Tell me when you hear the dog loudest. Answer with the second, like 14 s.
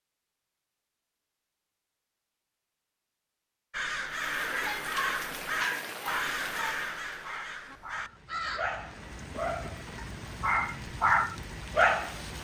12 s.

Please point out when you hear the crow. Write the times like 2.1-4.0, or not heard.
3.7-8.8.